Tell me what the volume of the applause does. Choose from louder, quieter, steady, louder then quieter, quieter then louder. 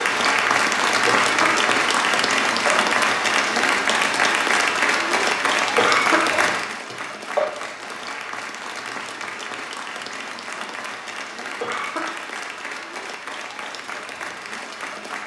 quieter.